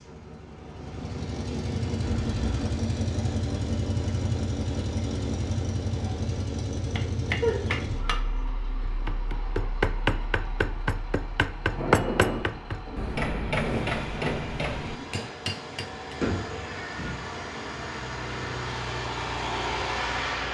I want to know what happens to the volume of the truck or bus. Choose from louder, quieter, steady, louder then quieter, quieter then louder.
quieter then louder.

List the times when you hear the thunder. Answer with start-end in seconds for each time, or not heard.
11.7-15.1.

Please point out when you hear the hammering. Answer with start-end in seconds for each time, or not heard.
6.9-16.2.